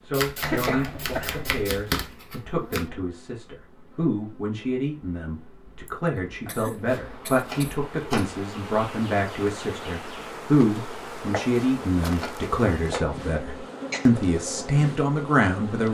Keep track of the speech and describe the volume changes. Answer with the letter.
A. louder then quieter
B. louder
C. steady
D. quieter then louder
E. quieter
B.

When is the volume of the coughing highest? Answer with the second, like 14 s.
1 s.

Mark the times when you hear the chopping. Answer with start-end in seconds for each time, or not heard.
0.1-2.9, 6.5-8.4, 11.3-13.1.